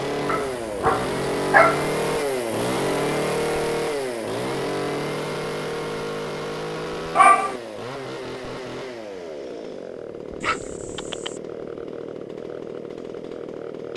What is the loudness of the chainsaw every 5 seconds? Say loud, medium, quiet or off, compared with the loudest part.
loud, medium, medium.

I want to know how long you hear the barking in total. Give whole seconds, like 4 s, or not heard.
3 s.